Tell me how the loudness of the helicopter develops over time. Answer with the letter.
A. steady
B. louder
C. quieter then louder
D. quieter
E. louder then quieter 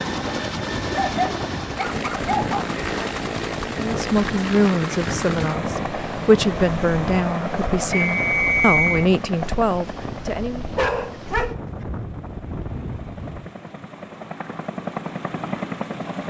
C.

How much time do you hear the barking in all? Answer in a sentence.
You can hear the barking for 3 seconds altogether.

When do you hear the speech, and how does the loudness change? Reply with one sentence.
The speech can be heard from 3.7 to 10.7 s, at a steady volume.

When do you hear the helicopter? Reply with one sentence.
You can hear the helicopter from 0.0 to 16.2 s.